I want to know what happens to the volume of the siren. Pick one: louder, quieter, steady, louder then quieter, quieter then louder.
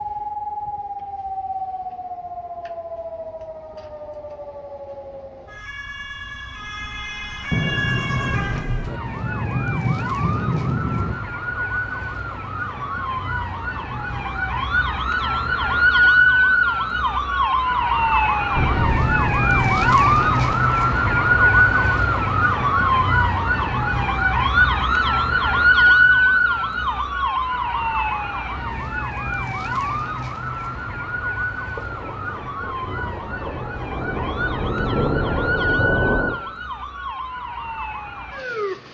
louder then quieter.